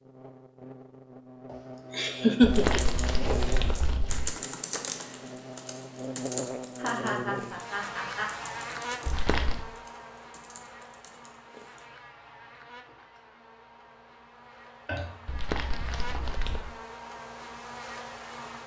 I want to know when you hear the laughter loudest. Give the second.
2 s.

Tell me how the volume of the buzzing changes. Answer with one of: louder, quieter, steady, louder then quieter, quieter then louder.
quieter then louder.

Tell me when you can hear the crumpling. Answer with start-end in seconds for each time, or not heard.
2.4-4.3, 9.1-9.7, 15.2-16.7.